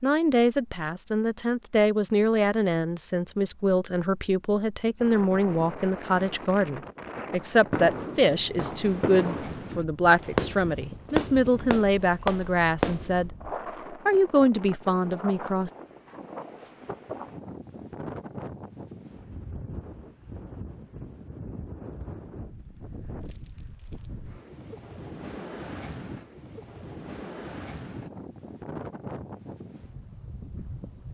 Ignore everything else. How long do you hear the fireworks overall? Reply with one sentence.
The fireworks can be heard for 6 seconds in total.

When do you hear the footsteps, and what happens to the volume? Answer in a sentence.
The footsteps can't be heard in this clip.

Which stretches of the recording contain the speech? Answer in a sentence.
The speech can be heard from 0.0 to 13.3 s and from 13.9 to 15.7 s.